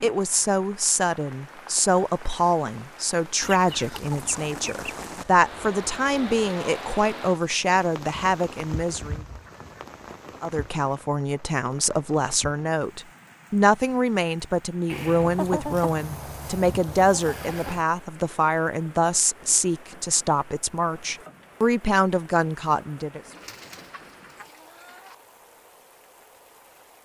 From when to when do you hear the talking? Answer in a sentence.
You can hear the talking from 0.0 to 9.2 s and from 10.4 to 23.2 s.